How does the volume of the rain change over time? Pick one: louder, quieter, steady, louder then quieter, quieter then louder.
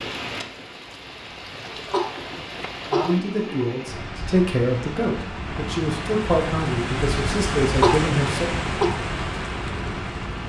louder.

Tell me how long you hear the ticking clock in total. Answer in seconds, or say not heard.
not heard.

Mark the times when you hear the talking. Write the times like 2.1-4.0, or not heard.
2.9-8.4.